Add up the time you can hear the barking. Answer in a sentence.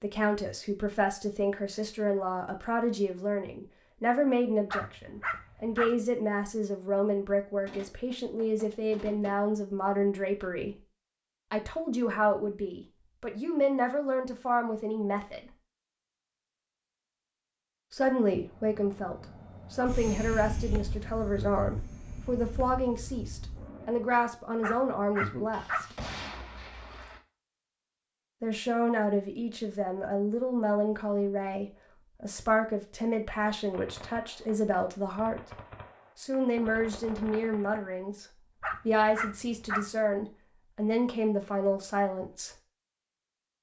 You can hear the barking for 4 seconds altogether.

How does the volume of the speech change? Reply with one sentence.
The loudness of the speech stays about the same.